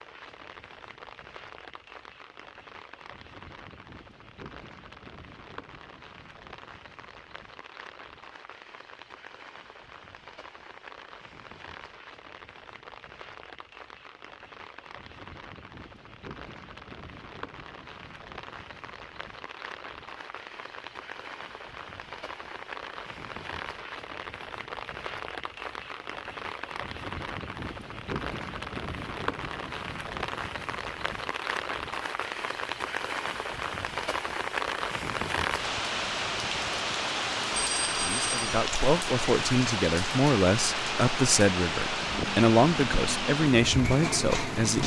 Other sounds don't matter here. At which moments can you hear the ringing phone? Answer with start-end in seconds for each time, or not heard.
37.5-38.5.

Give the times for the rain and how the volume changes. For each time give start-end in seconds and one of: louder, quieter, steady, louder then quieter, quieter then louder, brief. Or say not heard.
0.0-44.8 louder.